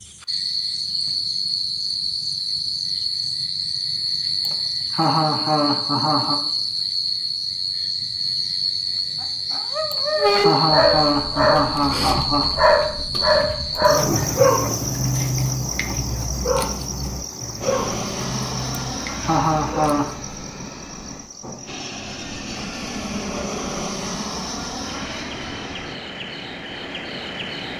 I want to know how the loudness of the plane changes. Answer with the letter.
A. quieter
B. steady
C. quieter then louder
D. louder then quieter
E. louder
C.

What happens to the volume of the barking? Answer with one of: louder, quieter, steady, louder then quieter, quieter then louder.
quieter.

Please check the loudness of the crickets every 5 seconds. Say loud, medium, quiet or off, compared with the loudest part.
loud, loud, loud, medium, quiet, medium.